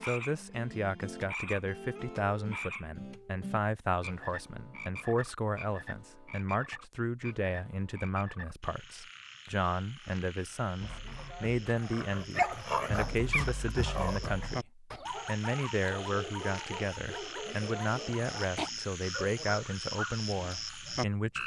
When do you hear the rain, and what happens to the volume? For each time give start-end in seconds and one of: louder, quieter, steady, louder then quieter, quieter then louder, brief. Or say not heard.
not heard.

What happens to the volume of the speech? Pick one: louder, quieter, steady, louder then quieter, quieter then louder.
steady.